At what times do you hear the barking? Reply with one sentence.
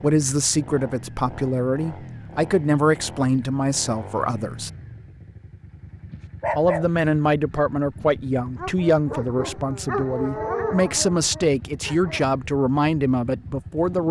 The barking can be heard from 6.0 to 12.3 s.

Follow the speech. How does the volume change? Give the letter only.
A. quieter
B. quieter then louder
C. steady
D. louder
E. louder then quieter
C.